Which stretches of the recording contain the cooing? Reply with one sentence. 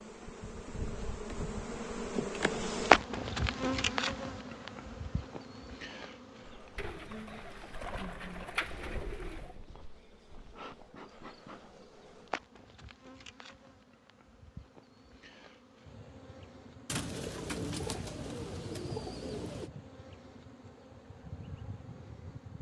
The cooing can be heard from 6.8 to 9.6 s and from 16.9 to 19.7 s.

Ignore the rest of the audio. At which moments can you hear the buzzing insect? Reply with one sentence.
You can hear the buzzing insect from 0.0 to 22.5 s.